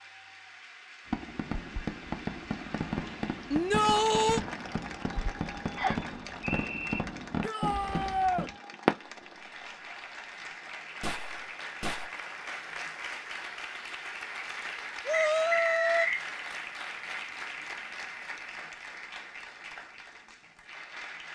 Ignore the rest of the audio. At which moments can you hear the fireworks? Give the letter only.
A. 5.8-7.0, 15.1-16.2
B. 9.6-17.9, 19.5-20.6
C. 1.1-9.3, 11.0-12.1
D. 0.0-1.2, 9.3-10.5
C.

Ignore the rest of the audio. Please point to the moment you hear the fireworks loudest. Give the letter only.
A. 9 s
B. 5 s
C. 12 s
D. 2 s
A.